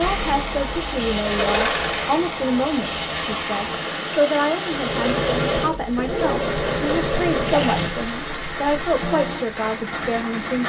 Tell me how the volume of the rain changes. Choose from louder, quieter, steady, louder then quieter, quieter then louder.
steady.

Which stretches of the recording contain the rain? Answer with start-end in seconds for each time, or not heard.
0.0-10.6.